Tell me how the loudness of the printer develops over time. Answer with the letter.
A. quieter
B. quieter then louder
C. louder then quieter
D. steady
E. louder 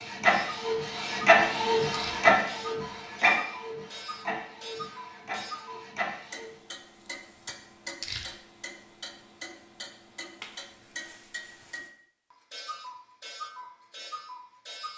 A.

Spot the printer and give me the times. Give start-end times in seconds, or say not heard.
0.0-6.5.